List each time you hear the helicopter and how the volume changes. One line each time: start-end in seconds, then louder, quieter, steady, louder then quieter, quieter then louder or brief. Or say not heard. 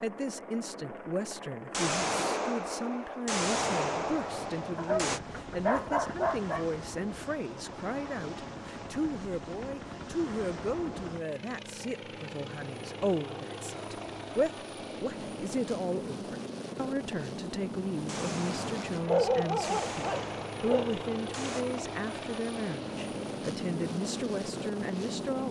0.0-25.4 louder.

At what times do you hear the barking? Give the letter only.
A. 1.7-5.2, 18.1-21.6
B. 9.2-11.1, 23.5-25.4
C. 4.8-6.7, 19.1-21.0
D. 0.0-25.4
C.